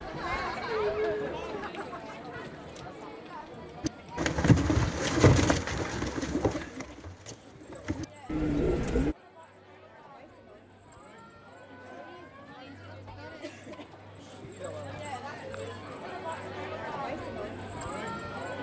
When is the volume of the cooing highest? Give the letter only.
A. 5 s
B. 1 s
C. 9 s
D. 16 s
A.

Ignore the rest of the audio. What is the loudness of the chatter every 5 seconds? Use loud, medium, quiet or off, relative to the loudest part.
loud, quiet, medium, loud.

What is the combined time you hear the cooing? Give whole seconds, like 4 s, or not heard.
5 s.